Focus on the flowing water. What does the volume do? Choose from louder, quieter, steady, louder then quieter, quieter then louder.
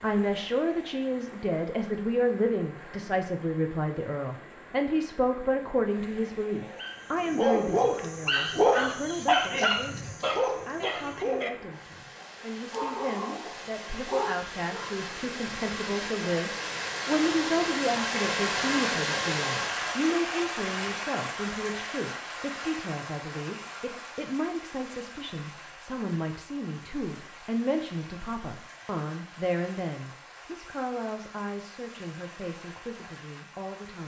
louder then quieter.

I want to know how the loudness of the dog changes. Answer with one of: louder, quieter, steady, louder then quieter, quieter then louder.
quieter.